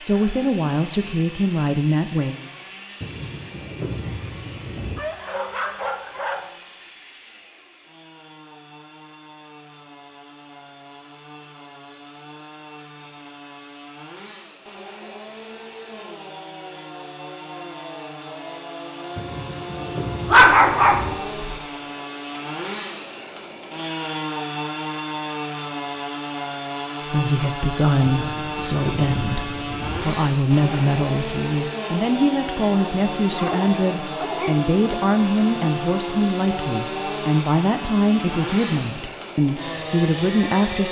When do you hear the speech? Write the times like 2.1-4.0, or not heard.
0.0-2.4, 27.1-40.8.